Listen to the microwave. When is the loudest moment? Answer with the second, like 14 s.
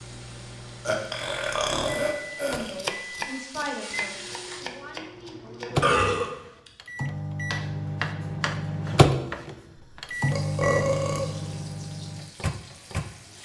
9 s.